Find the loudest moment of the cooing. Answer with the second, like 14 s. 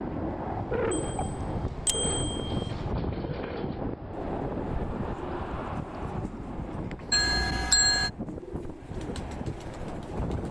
1 s.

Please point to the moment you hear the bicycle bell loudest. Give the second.
8 s.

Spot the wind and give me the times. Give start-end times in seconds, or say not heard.
0.0-10.4.